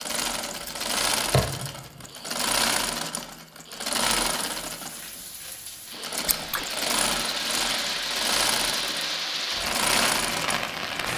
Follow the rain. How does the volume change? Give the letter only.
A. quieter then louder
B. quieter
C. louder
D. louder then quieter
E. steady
C.